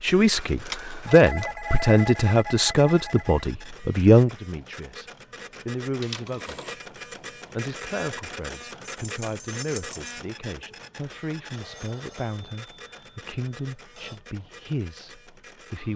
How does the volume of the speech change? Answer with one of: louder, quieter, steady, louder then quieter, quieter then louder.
quieter.